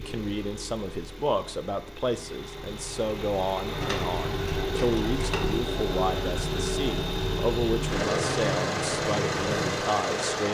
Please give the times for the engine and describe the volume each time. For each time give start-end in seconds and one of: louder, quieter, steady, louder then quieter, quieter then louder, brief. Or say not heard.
0.0-10.5 louder.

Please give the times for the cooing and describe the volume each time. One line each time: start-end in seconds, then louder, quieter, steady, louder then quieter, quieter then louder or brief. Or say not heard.
3.6-9.9 steady.